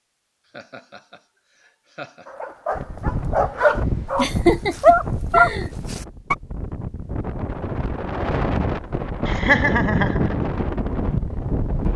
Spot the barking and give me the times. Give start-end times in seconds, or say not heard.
2.2-6.3.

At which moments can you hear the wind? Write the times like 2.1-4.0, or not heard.
2.8-11.9.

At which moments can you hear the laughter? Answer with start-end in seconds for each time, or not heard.
0.5-2.2, 4.2-5.7, 9.2-10.3.